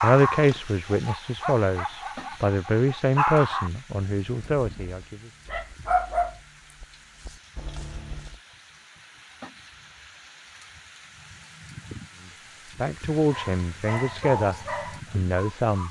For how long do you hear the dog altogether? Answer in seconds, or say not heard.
11 s.